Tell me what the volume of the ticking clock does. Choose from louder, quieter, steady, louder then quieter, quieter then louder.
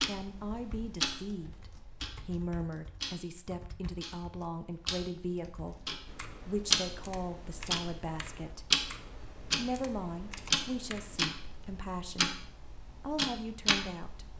quieter then louder.